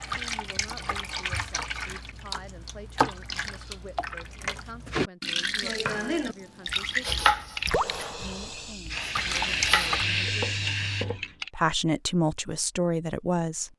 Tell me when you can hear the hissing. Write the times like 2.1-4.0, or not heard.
7.3-11.5.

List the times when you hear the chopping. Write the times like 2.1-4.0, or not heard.
5.5-11.2.